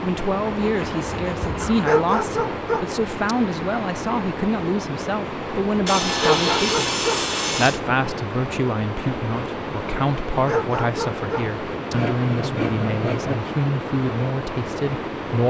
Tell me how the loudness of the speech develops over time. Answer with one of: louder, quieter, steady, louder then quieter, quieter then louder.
steady.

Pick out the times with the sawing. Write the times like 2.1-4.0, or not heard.
0.7-2.0, 5.8-7.8, 11.9-13.4.